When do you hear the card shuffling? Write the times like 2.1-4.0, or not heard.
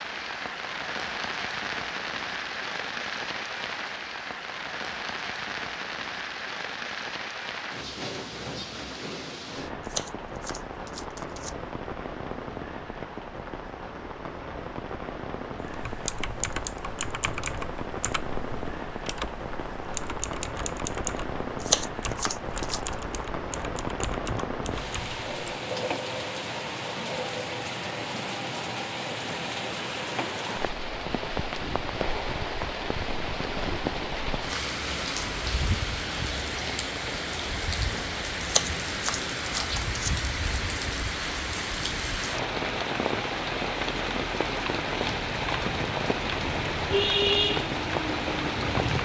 9.8-11.5, 21.6-22.9, 38.5-40.1.